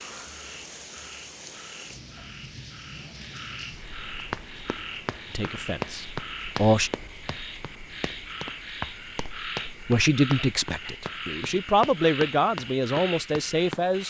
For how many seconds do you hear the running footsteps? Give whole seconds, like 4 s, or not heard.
10 s.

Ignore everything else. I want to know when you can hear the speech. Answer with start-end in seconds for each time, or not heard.
5.3-6.9, 9.7-14.0.